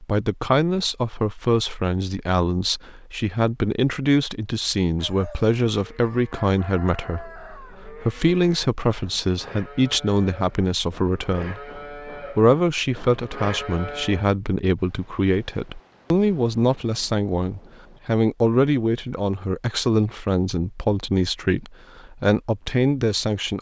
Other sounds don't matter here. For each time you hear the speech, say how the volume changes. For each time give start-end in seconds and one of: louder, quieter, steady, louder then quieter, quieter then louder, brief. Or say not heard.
0.0-23.5 steady.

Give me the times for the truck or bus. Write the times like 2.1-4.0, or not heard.
not heard.